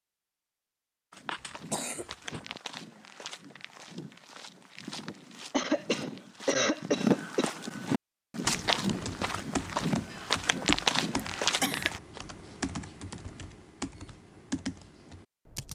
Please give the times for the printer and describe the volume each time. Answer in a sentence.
The printer can't be heard in this clip.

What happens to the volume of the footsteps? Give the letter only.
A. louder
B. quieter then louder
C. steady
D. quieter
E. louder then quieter
A.